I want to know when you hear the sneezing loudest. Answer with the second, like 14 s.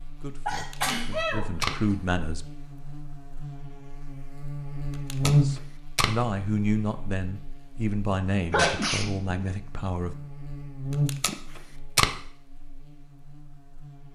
9 s.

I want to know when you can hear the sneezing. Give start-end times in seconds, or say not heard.
0.5-1.4, 8.5-9.4.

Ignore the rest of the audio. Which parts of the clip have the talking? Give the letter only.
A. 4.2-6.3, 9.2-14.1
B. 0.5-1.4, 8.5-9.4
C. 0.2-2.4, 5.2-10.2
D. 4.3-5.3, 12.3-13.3
C.